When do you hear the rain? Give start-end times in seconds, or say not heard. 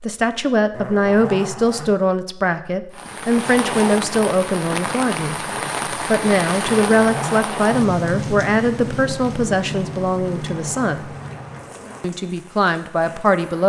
2.9-13.6.